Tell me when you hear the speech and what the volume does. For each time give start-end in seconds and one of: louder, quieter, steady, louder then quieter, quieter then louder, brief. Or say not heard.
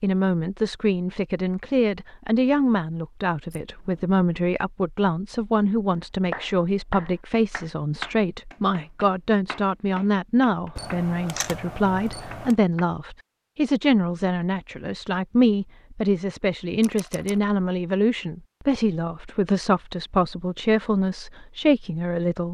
0.0-22.5 steady.